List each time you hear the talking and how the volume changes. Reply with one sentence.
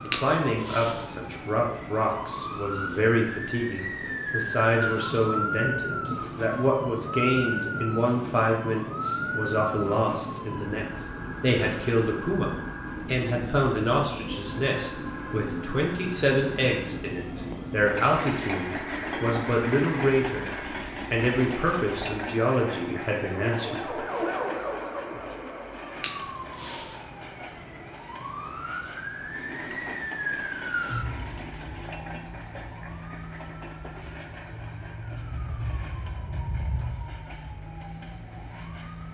The talking can be heard from 0.1 to 24.1 s, at a steady volume.